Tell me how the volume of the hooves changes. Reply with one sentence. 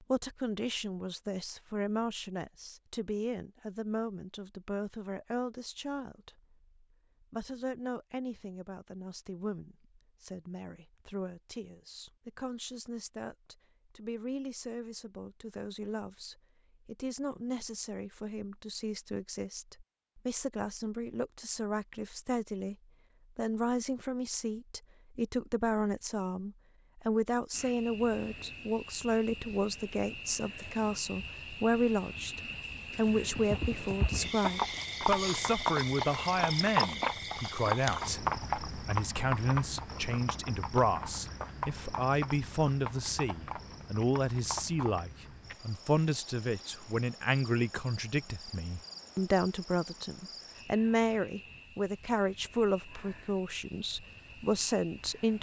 The loudness of the hooves goes down.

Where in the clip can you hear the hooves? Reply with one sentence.
The hooves can be heard from 33.1 to 45.1 s.